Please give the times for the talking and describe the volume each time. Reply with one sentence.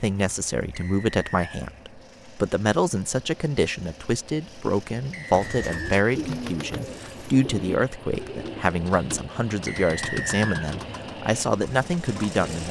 The talking can be heard from 0.0 to 12.6 s, at a steady volume.